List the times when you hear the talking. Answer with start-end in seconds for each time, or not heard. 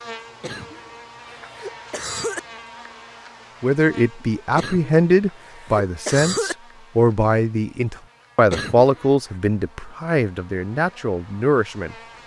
3.6-11.9.